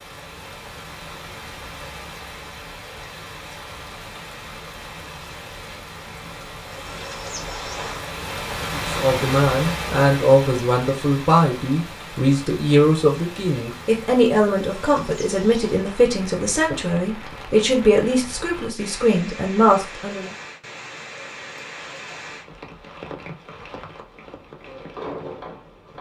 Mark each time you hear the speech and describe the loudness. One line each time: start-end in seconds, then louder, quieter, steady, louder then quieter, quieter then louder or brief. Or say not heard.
8.8-20.3 steady.